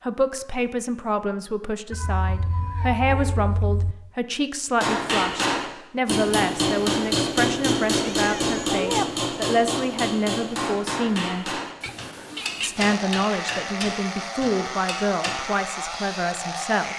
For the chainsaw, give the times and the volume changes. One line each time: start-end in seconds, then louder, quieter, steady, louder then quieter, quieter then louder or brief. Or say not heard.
12.8-16.9 steady.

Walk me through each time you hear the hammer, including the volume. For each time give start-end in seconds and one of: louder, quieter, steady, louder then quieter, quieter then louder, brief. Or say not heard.
4.8-15.6 quieter.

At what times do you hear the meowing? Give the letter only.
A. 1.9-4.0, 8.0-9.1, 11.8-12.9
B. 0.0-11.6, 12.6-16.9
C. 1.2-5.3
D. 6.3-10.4
A.